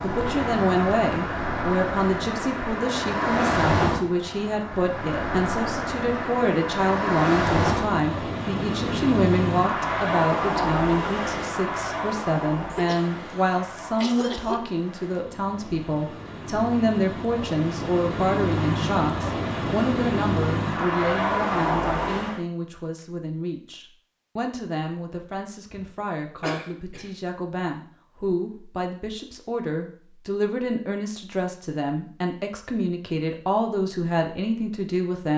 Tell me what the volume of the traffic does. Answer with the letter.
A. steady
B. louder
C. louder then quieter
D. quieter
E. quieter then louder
E.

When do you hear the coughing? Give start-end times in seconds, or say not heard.
12.7-14.7, 25.7-27.1.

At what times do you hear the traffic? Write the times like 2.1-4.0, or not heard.
0.0-22.4.